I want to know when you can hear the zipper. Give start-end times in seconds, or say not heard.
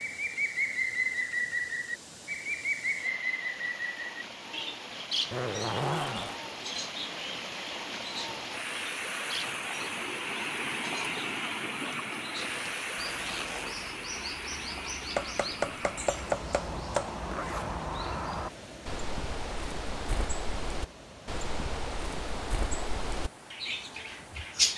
5.3-6.4, 12.6-13.8, 17.2-17.8.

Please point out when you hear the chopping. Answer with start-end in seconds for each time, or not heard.
15.2-17.1.